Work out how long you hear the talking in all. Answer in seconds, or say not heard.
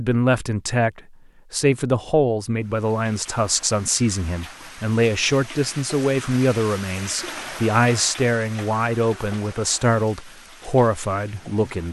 12 s.